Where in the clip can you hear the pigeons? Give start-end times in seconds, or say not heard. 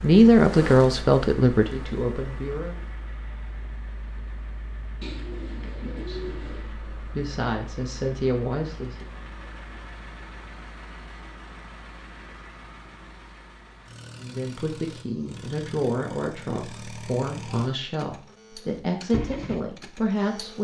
5.0-6.8.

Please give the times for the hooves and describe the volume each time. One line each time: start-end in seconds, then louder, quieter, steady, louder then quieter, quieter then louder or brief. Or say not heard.
not heard.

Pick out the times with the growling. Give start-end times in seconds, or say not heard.
not heard.